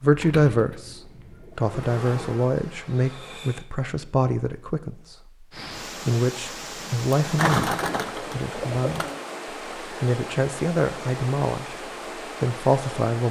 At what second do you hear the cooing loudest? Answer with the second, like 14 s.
8 s.